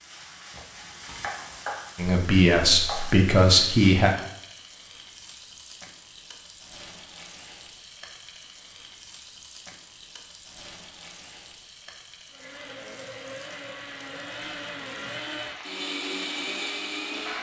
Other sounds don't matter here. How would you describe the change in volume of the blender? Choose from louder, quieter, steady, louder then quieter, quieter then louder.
louder.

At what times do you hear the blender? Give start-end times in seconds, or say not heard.
12.3-17.3.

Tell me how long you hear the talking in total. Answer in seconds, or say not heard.
2 s.